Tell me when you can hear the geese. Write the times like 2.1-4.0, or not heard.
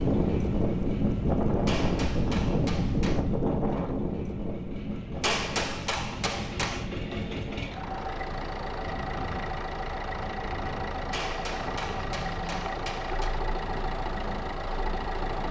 not heard.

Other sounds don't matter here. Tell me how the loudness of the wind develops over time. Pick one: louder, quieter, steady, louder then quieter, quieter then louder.
quieter.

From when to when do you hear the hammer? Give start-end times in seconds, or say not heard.
1.6-3.2, 5.2-6.9, 11.1-13.3.